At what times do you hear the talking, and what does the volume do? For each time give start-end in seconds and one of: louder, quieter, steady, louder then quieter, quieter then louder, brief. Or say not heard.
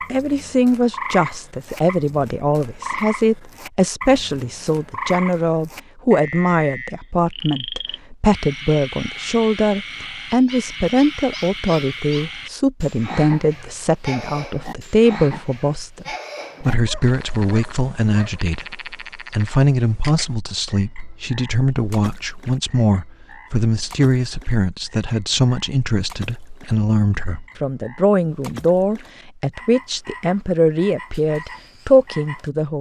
0.1-32.7 steady.